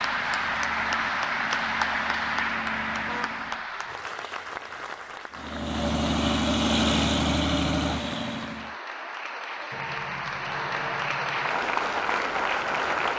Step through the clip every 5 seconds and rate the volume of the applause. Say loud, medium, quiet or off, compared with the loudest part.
loud, medium, loud.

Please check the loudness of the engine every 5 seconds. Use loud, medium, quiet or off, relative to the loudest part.
quiet, loud, off.